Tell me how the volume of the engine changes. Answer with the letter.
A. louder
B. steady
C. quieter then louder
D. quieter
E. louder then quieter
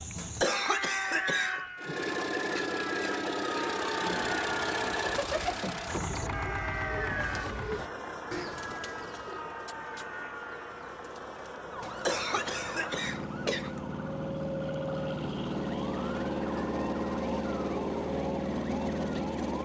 C.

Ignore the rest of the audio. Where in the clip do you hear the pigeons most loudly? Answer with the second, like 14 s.
5 s.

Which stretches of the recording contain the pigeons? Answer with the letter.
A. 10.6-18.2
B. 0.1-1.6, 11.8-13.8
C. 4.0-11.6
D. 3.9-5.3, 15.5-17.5
C.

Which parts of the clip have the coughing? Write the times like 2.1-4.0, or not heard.
0.1-1.6, 11.8-13.8.